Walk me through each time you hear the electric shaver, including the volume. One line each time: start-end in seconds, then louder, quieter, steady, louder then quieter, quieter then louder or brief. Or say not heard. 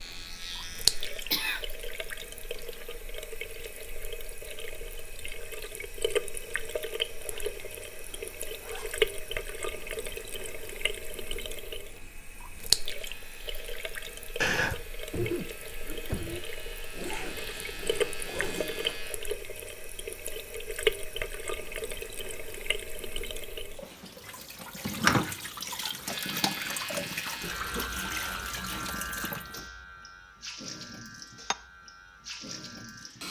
0.0-1.4 brief
12.9-19.2 louder
26.1-33.2 quieter.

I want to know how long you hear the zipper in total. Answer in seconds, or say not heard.
5 s.